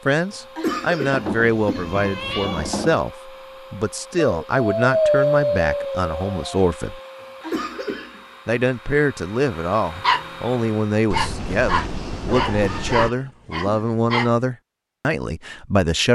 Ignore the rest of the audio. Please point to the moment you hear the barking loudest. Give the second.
5 s.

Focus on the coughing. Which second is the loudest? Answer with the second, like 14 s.
1 s.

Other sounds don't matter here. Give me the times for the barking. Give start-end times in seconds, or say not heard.
4.4-6.5, 10.0-14.3.